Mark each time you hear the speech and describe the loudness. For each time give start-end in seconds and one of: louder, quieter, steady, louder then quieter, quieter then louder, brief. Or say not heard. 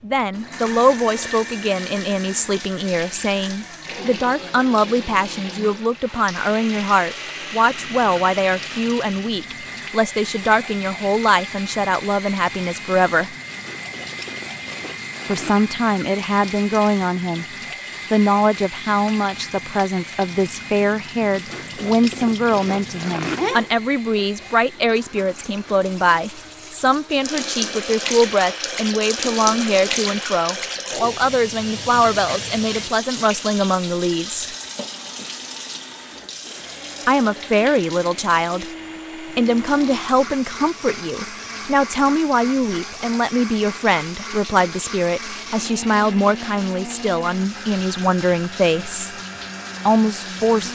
0.0-13.3 steady
15.2-34.5 steady
37.0-49.1 steady
49.9-50.7 brief.